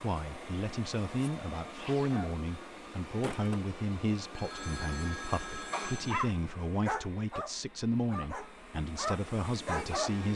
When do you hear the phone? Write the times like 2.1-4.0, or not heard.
4.3-6.2.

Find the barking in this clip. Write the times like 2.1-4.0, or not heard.
6.0-10.2.